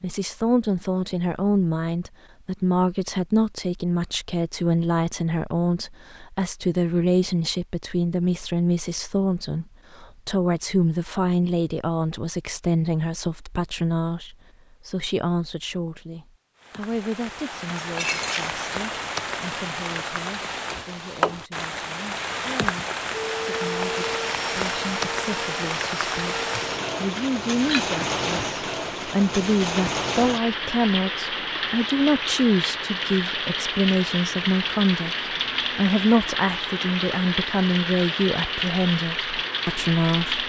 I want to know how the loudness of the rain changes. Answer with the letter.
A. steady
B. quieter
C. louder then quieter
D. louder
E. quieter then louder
A.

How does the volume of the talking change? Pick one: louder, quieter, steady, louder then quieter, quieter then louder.
quieter then louder.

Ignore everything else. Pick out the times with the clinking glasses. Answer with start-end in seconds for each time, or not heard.
17.8-18.6, 27.1-27.9.